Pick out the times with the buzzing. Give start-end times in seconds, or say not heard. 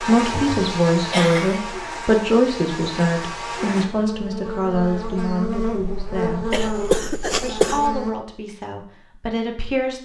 0.0-8.2.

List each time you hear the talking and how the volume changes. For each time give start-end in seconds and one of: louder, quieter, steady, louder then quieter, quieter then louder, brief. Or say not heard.
0.0-6.5 quieter
7.4-10.0 brief.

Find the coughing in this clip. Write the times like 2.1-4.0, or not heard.
0.2-1.7, 6.5-7.8.